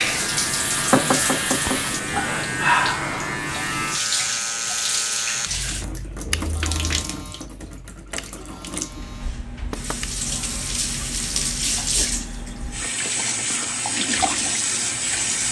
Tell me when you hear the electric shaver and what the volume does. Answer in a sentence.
You can hear the electric shaver from 0.0 to 10.8 s, getting quieter.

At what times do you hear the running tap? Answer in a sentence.
You can hear the running tap from 0.0 to 15.4 s.